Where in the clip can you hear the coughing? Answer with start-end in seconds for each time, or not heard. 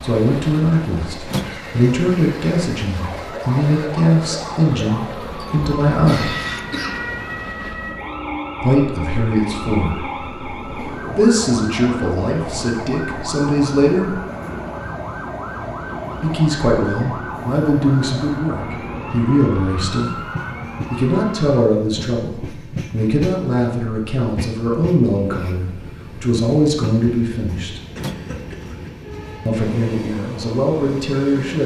5.4-7.0, 27.9-28.9.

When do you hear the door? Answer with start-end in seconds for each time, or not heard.
1.3-1.9, 28.0-28.7.